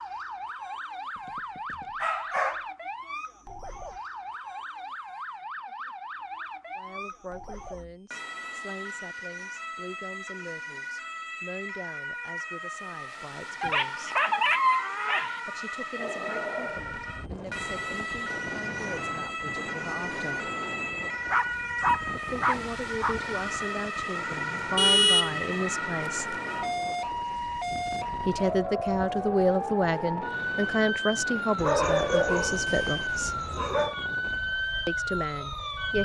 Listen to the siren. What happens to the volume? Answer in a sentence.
The loudness of the siren goes up.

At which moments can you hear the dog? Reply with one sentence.
You can hear the dog from 1.2 to 2.6 s, from 13.6 to 15.4 s, from 20.9 to 23.1 s and from 31.6 to 34.0 s.